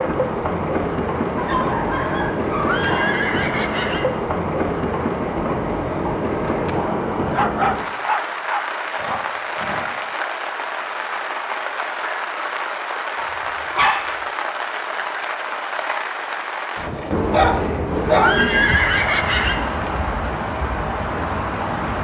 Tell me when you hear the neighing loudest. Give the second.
19 s.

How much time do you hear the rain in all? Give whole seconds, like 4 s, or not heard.
22 s.